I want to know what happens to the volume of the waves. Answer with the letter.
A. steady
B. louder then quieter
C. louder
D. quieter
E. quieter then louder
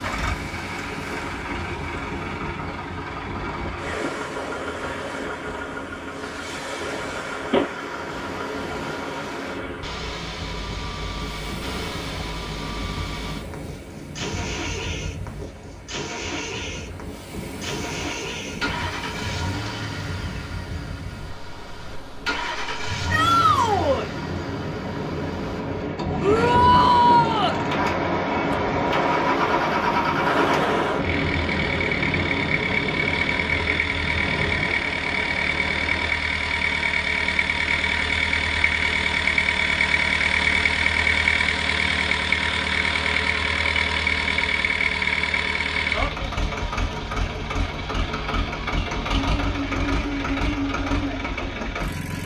C.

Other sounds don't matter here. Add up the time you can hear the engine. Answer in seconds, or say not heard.
52 s.